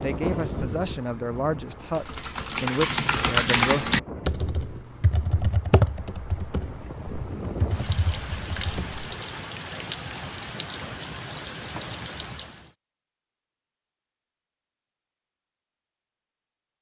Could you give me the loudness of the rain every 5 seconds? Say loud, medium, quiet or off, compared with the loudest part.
loud, loud, loud, off.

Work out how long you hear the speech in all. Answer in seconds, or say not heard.
4 s.